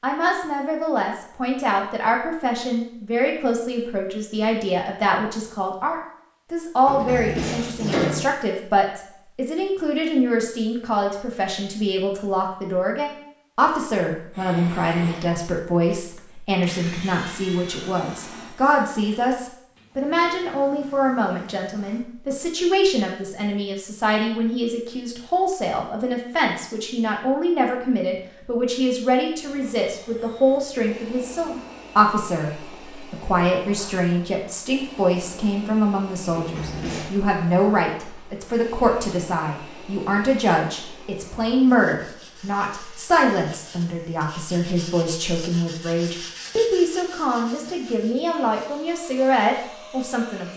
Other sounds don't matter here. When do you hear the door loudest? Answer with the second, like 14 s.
8 s.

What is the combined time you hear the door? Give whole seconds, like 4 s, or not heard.
2 s.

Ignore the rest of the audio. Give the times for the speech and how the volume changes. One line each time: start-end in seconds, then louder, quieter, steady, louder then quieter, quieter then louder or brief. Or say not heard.
0.0-50.5 steady.